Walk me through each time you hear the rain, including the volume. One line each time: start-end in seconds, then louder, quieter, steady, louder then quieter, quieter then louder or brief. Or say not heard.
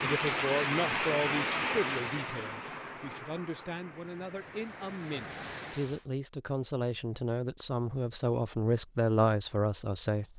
0.0-6.0 quieter then louder.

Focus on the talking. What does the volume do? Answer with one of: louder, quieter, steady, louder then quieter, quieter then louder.
quieter then louder.